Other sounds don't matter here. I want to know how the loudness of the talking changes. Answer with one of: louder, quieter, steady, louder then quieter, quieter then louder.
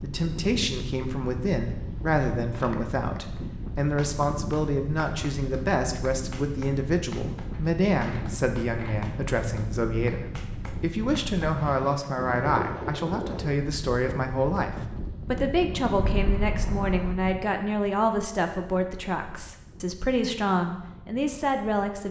steady.